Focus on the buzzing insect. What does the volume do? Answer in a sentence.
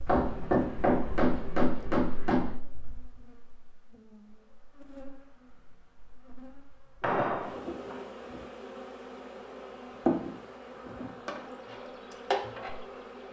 The loudness of the buzzing insect goes up.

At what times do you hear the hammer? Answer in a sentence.
The hammer can be heard from 0.1 to 2.5 s and from 7.0 to 8.1 s.